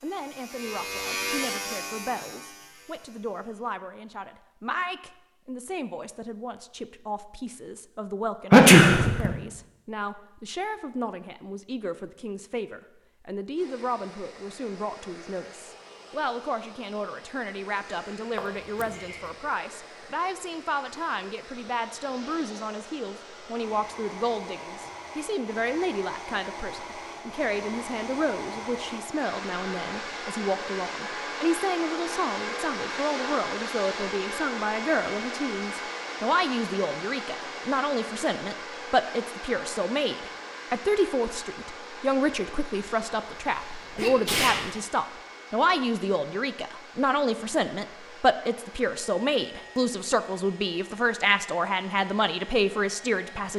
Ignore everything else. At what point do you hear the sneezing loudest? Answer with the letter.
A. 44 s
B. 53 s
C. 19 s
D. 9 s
D.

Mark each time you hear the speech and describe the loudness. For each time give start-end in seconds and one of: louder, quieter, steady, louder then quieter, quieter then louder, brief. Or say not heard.
0.0-53.5 louder.